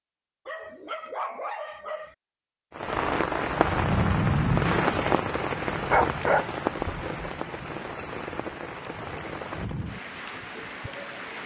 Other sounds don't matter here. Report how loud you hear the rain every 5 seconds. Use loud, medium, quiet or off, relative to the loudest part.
loud, medium, quiet.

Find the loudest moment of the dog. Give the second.
6 s.